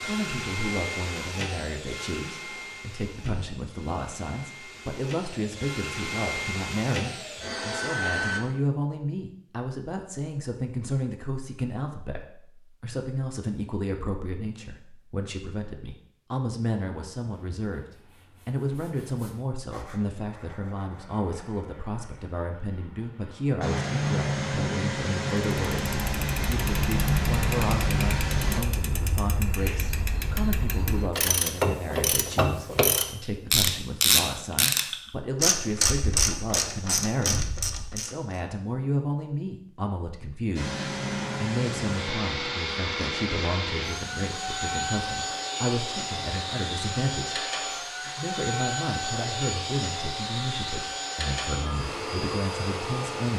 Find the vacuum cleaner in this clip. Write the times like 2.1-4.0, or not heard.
0.0-8.4, 23.6-28.6, 40.5-53.3.